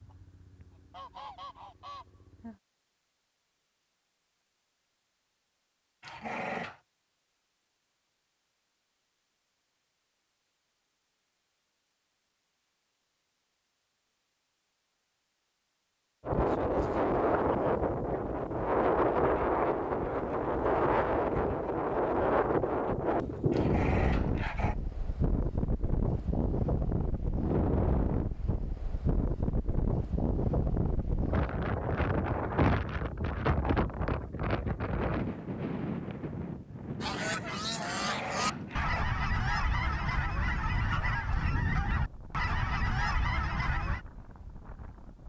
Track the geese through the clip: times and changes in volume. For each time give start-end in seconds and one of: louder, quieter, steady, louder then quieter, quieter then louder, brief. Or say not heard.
0.0-2.6 brief
37.0-44.0 steady.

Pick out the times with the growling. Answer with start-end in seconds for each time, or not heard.
6.0-6.8, 23.5-24.8, 37.9-39.0.